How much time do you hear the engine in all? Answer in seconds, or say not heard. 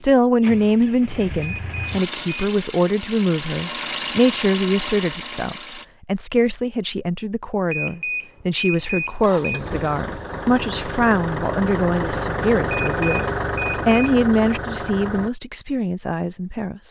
12 s.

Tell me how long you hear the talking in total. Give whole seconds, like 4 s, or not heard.
17 s.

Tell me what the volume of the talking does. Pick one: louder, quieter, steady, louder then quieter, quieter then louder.
steady.